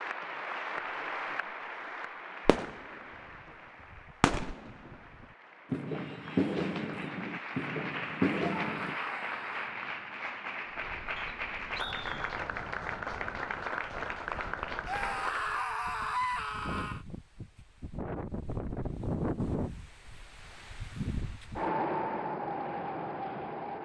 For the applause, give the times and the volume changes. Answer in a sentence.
You can hear the applause from 0.0 to 15.7 s, getting quieter then louder.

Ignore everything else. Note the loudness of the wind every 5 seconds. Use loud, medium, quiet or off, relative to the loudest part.
off, off, quiet, loud, loud.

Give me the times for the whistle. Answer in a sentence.
You can hear the whistle from 11.2 to 12.3 s.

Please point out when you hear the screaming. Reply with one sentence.
You can hear the screaming from 8.3 to 9.7 s and from 14.8 to 17.0 s.